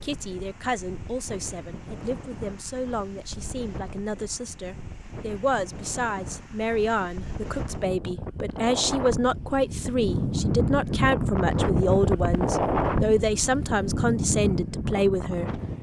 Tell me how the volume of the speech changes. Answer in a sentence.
The volume of the speech goes up.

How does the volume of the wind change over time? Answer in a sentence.
The volume of the wind goes up.